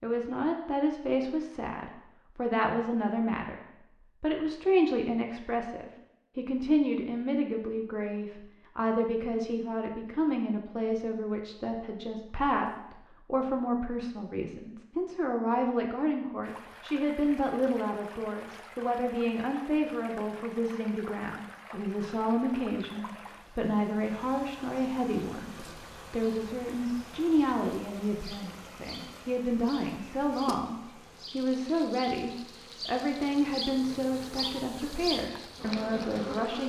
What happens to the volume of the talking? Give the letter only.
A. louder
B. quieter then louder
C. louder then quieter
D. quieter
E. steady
E.